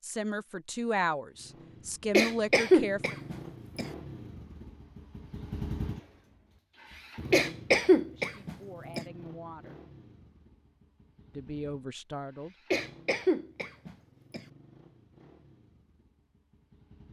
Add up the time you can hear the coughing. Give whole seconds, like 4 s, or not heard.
5 s.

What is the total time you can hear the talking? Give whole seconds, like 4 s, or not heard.
6 s.